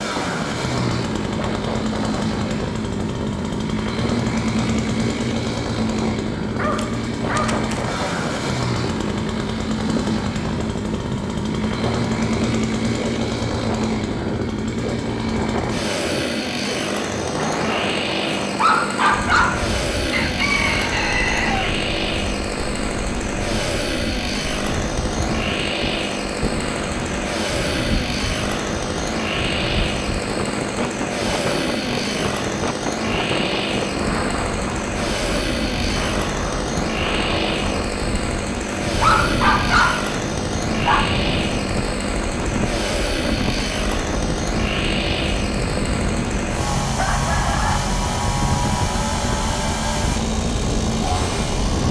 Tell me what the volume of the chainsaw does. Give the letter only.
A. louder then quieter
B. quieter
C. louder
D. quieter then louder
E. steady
E.